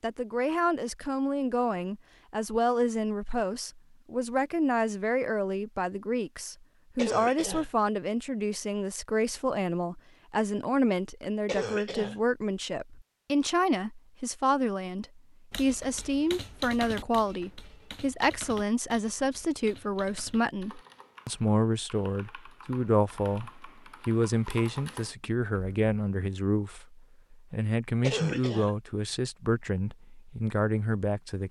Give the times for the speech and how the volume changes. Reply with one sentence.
The speech can be heard from 0.0 to 31.4 s, at a steady volume.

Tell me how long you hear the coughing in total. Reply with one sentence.
The coughing can be heard for 2 seconds in total.